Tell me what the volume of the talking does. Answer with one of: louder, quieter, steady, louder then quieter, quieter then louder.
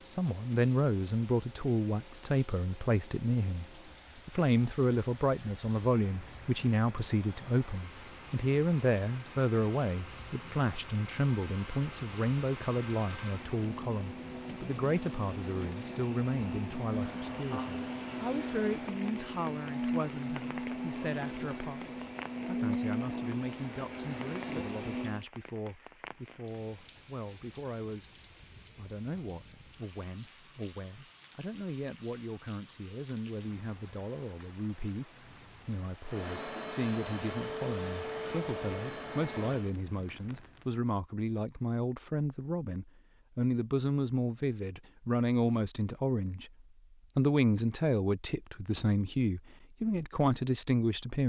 quieter then louder.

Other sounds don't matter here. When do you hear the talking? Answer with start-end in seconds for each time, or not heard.
0.0-3.6, 4.2-28.1, 28.8-46.5, 47.1-51.2.